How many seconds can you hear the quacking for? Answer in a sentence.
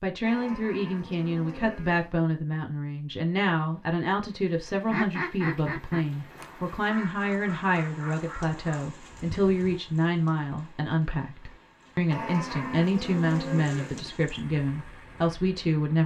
The quacking can be heard for 5 seconds in total.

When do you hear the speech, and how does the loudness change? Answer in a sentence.
The speech can be heard from 0.0 to 16.0 s, at a steady volume.